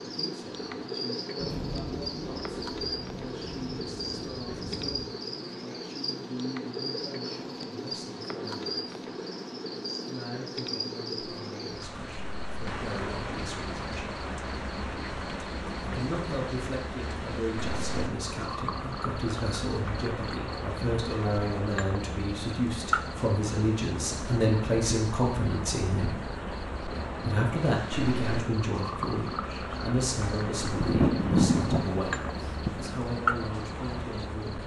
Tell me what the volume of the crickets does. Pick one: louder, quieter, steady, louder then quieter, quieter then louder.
steady.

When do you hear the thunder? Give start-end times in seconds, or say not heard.
1.4-5.1, 30.6-32.9.